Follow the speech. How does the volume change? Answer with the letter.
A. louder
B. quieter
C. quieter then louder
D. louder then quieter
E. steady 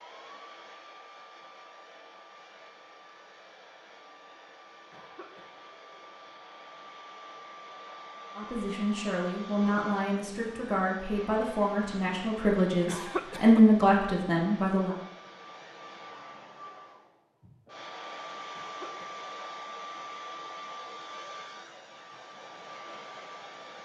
A.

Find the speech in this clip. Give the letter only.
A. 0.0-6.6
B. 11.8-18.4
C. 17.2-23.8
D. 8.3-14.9
D.